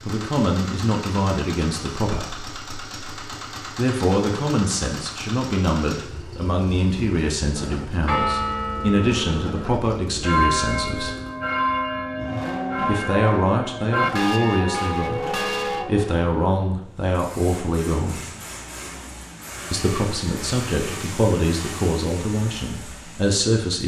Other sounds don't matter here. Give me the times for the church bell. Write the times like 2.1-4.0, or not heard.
7.5-15.8.